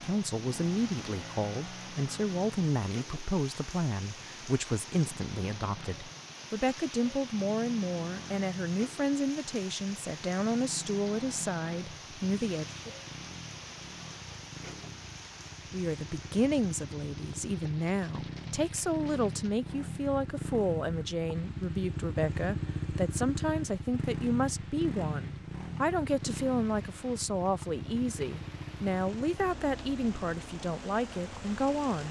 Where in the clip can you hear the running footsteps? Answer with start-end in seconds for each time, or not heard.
not heard.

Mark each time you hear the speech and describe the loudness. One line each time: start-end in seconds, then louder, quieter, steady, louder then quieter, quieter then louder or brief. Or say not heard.
0.0-12.8 steady
15.7-32.0 steady.